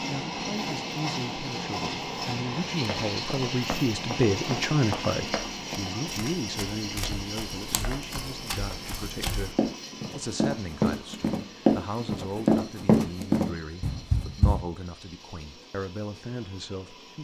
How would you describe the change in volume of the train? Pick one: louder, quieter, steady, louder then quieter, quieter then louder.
quieter.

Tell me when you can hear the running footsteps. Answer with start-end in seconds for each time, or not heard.
2.8-14.6.